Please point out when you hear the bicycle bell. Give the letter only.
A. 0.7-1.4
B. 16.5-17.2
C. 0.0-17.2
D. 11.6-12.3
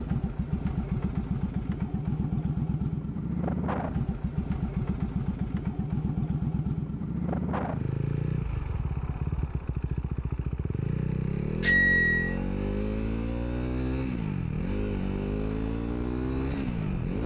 D.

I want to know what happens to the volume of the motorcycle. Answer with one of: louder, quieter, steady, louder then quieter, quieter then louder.
steady.